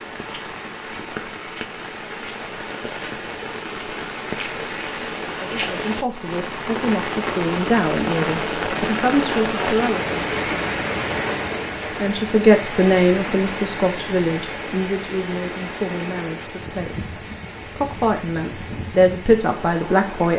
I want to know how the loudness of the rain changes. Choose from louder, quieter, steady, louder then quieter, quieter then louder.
louder then quieter.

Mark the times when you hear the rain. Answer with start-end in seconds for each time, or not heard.
0.0-20.3.